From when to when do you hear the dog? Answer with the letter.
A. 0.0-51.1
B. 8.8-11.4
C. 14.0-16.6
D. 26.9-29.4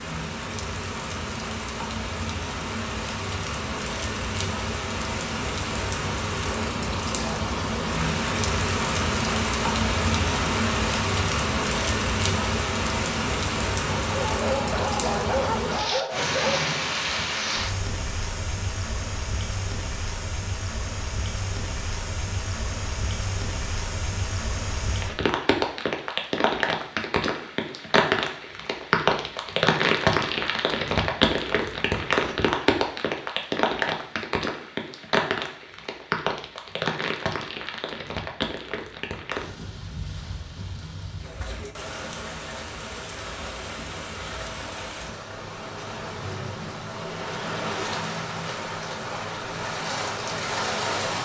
C.